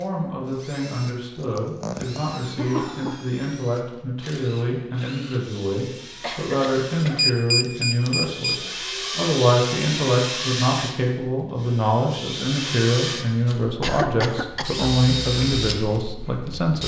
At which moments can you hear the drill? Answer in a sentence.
You can hear the drill from 0.0 to 16.8 s.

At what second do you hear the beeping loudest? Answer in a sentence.
The volume of the beeping peaks at 7 seconds.